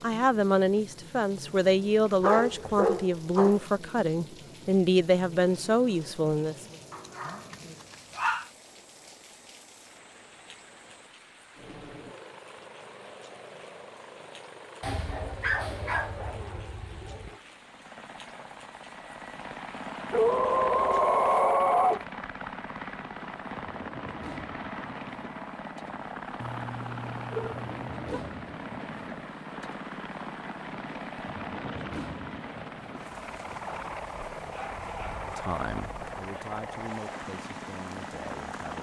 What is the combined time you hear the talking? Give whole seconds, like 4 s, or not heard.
10 s.